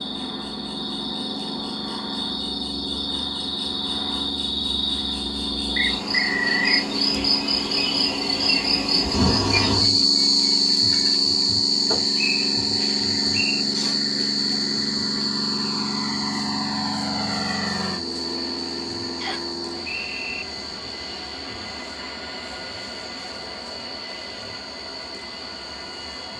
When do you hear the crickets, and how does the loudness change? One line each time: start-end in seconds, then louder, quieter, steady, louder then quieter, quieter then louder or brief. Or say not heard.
0.0-26.3 louder then quieter.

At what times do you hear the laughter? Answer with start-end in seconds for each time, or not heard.
not heard.